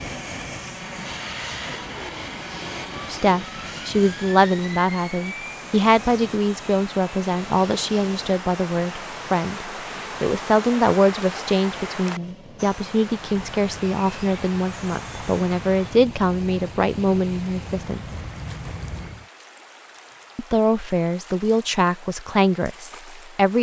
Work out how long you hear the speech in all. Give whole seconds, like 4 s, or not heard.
18 s.